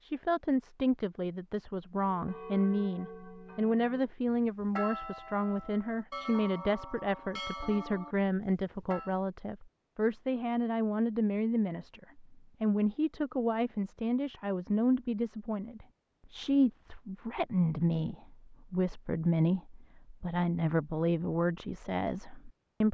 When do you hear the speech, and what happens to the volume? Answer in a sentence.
The speech can be heard from 0.0 to 22.8 s, at a steady volume.